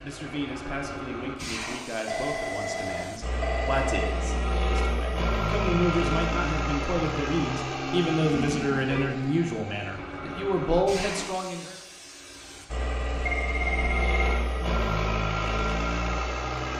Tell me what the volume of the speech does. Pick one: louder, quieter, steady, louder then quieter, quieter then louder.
louder.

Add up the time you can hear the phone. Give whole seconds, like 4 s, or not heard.
4 s.